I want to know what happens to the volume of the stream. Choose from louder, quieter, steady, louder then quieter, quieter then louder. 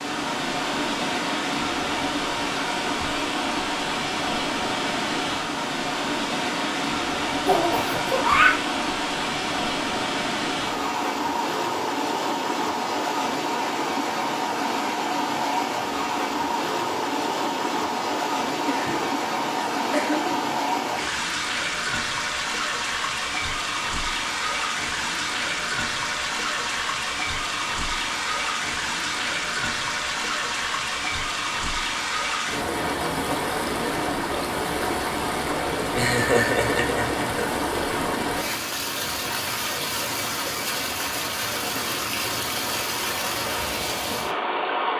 steady.